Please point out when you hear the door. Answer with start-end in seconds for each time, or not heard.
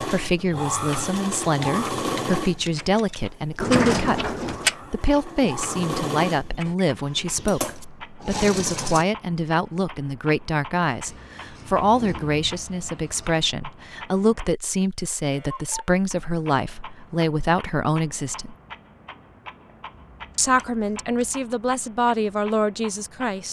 3.5-4.8.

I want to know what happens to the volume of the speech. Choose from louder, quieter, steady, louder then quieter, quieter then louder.
steady.